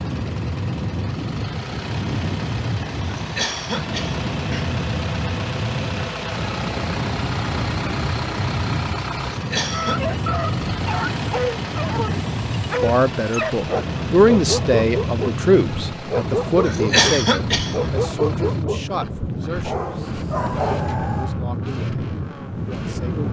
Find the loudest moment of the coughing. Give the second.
17 s.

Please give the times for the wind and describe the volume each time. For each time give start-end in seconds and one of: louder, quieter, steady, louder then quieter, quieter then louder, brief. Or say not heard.
0.0-23.2 steady.